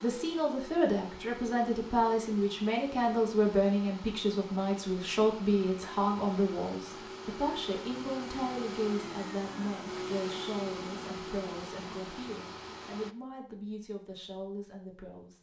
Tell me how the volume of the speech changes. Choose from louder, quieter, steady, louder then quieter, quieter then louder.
quieter.